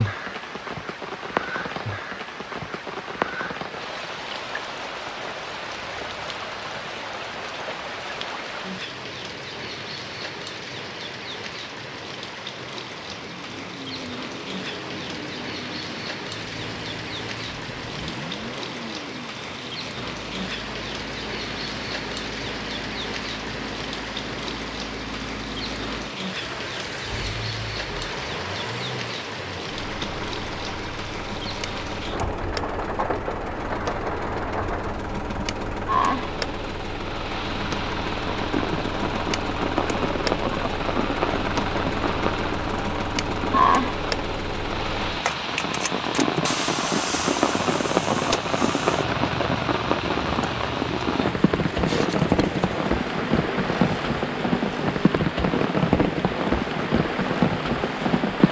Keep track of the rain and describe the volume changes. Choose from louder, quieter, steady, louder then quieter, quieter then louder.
louder.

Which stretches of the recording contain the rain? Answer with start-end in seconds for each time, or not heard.
0.0-58.4.